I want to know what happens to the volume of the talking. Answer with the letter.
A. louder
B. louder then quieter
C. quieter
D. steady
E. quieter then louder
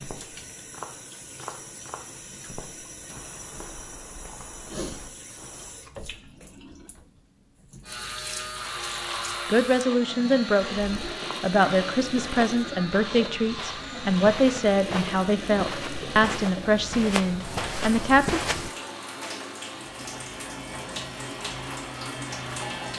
D.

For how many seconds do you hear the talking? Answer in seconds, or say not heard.
9 s.